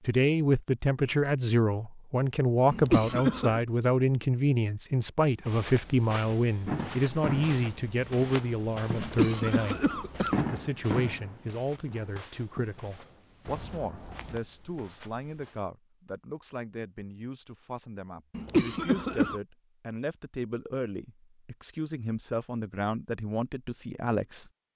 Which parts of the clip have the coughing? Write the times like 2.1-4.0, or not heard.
2.7-3.6, 8.9-10.5, 18.3-19.4.